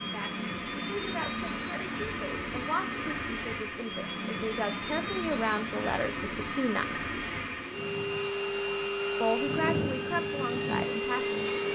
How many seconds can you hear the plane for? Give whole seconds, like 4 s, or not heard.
12 s.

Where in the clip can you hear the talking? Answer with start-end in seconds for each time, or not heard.
0.0-7.0, 9.2-11.7.